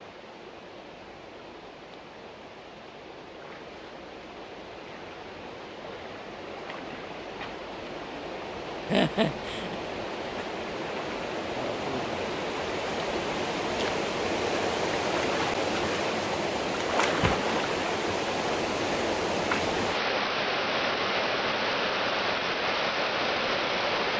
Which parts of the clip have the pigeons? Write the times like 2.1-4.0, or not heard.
not heard.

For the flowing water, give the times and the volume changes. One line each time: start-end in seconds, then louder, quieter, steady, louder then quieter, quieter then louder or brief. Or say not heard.
0.0-24.1 louder.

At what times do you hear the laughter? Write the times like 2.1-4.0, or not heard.
8.8-9.8.